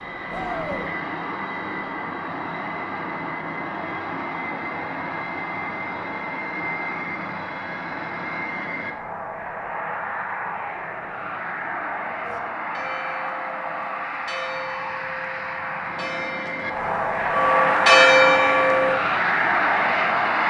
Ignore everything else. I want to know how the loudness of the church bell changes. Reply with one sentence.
The volume of the church bell goes up.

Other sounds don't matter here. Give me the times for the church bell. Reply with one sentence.
The church bell can be heard from 12.2 to 18.9 s.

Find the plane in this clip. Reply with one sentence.
The plane can be heard from 0.0 to 20.4 s.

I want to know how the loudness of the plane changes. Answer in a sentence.
The loudness of the plane goes up.